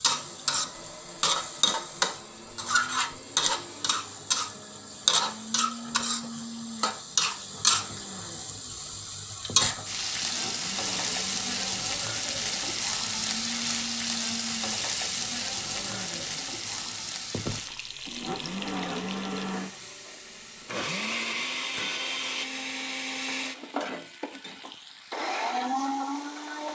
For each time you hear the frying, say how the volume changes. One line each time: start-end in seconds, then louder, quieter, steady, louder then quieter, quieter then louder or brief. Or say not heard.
0.0-26.7 quieter.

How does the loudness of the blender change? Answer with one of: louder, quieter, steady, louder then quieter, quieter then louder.
louder.